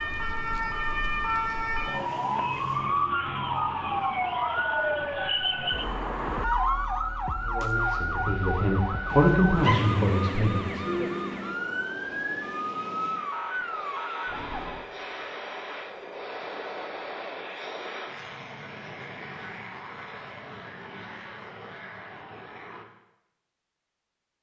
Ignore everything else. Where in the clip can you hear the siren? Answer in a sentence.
The siren can be heard from 0.0 to 14.9 s.